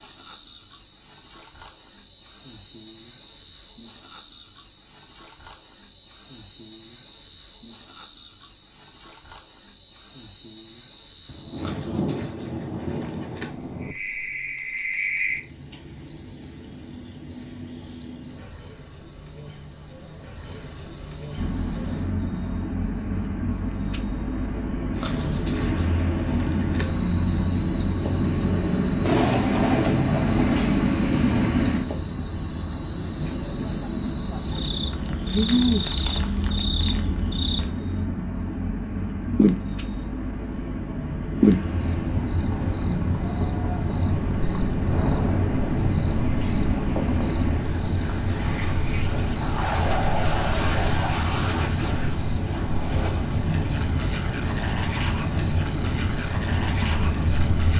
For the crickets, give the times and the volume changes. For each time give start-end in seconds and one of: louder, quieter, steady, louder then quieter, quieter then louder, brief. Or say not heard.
0.0-40.1 louder
41.4-57.7 steady.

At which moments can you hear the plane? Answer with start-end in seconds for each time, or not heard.
21.4-57.7.